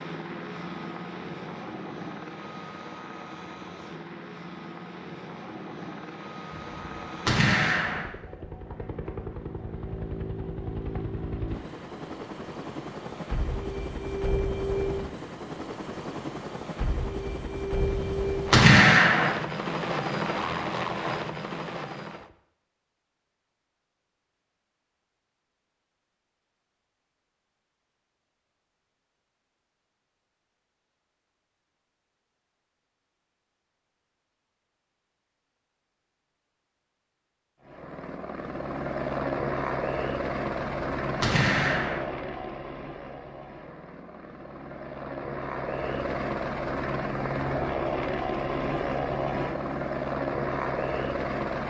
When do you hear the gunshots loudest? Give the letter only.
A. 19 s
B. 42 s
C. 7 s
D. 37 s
A.